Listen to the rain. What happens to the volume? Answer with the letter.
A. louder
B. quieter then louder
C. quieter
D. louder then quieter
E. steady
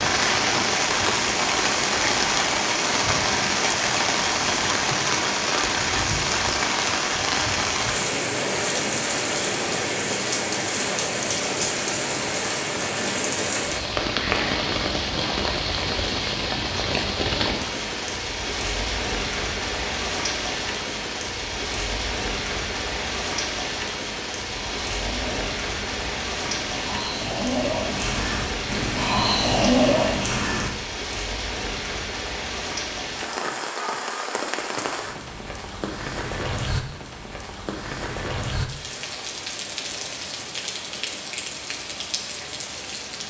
C.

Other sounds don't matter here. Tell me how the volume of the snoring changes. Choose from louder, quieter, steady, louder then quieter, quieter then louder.
louder.